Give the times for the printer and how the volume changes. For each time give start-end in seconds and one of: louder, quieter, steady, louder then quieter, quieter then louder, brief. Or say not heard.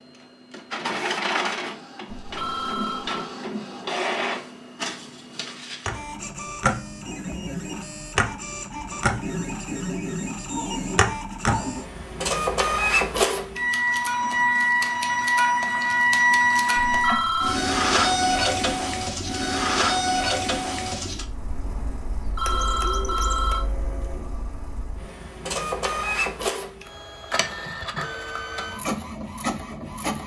0.0-30.2 louder then quieter.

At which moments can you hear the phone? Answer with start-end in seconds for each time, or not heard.
2.1-3.3, 16.9-17.6, 22.1-23.6.